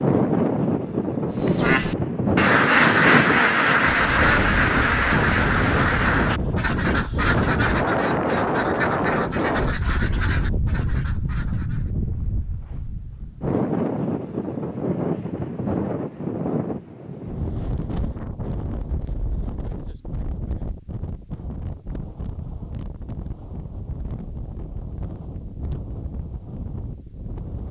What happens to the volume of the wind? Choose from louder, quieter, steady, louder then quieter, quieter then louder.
quieter.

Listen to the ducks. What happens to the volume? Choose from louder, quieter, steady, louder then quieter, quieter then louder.
quieter.